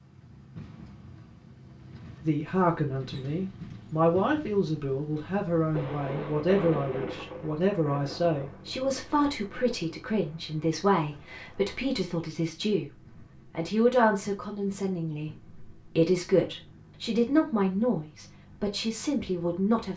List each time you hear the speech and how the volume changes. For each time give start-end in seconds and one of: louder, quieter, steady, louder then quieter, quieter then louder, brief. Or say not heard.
2.2-19.9 steady.